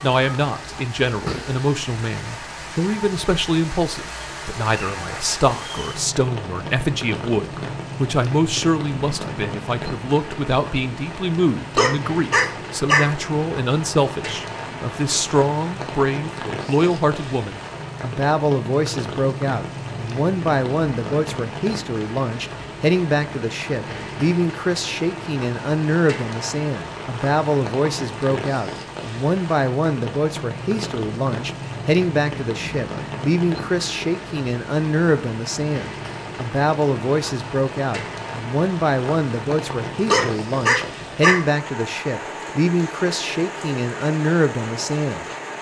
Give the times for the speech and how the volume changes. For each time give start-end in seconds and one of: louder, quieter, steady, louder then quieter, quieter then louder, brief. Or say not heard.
0.0-45.2 steady.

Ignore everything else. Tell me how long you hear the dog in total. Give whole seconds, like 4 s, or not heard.
3 s.